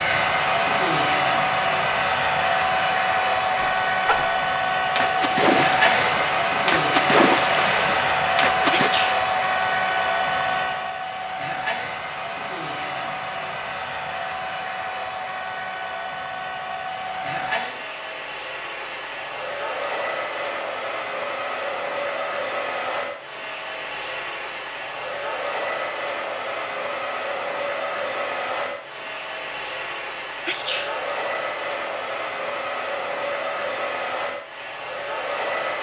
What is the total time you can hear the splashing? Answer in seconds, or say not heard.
5 s.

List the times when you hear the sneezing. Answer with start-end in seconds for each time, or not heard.
8.7-9.2, 30.4-31.0.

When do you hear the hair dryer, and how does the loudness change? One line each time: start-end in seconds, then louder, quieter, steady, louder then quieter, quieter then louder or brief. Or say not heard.
0.0-35.7 quieter.